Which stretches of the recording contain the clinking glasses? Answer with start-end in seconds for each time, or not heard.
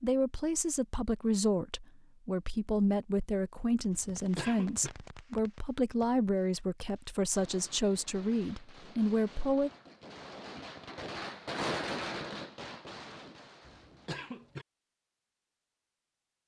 not heard.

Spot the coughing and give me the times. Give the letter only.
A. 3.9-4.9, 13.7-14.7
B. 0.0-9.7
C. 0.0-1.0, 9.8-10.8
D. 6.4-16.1
A.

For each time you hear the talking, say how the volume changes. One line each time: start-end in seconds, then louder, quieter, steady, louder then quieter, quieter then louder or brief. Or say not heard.
0.0-9.7 steady.